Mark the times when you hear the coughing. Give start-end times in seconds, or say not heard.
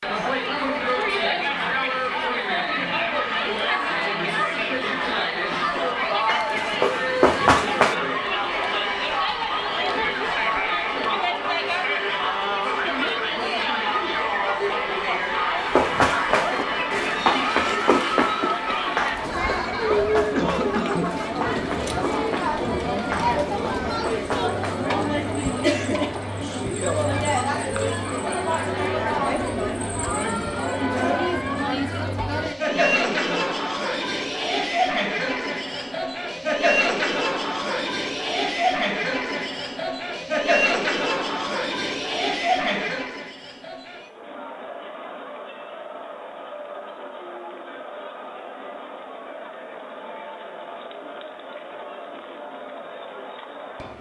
20.4-21.2, 32.6-33.5.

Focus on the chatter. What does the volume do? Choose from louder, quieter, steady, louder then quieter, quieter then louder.
quieter.